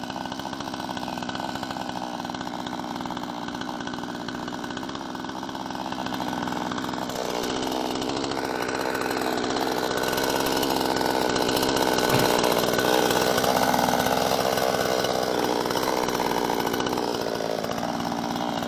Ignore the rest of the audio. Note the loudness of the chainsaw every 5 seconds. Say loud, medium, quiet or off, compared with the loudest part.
medium, medium, loud, loud.